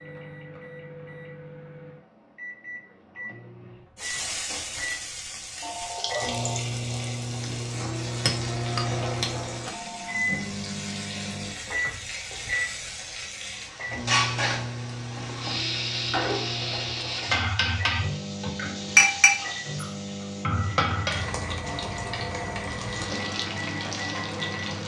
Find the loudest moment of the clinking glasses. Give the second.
19 s.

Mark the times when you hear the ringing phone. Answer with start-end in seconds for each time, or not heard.
5.6-6.6, 9.7-10.3, 21.6-22.6.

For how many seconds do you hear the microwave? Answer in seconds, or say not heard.
25 s.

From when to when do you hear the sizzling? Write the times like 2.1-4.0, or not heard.
4.0-24.8.